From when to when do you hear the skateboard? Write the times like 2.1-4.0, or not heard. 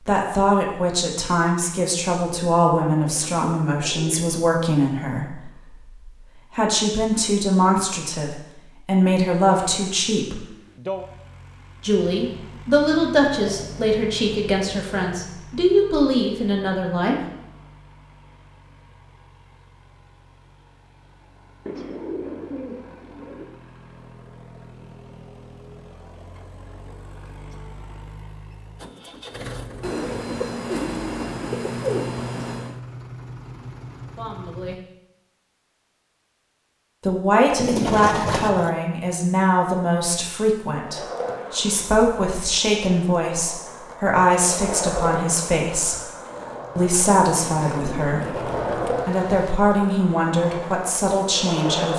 40.8-51.9.